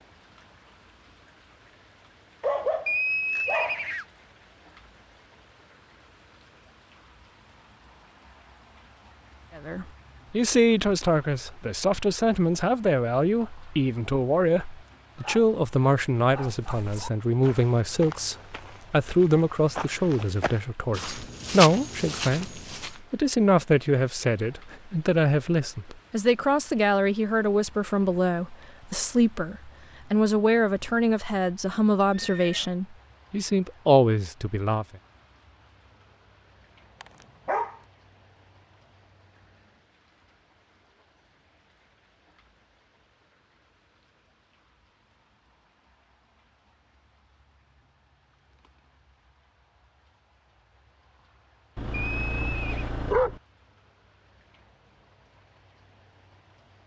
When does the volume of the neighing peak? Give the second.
3 s.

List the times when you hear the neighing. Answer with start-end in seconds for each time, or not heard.
2.9-4.0, 32.1-32.8, 51.9-52.9.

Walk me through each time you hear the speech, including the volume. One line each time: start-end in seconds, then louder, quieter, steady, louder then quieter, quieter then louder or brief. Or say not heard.
9.6-34.9 steady.